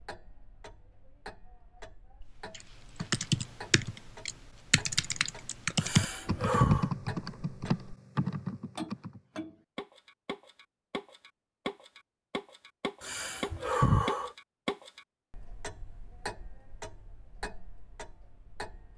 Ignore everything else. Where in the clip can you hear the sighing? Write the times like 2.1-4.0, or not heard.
5.8-6.9, 13.0-14.3.